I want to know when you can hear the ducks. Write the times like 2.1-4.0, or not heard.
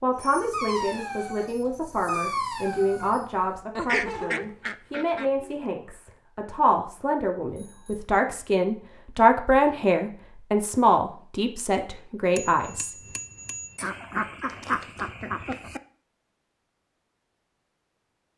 3.8-5.5, 13.8-15.8.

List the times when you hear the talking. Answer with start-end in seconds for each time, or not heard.
0.0-12.9.